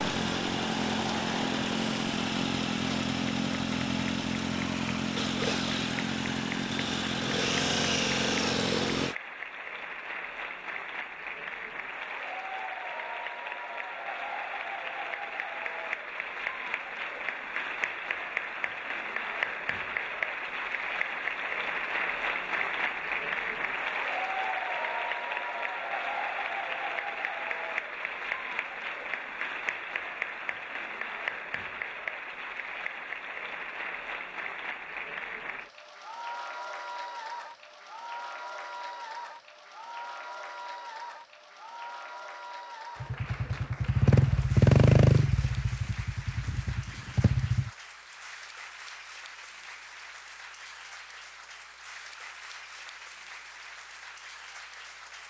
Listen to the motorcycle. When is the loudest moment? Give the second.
45 s.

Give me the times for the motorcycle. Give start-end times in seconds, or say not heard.
0.0-9.2, 43.0-47.7.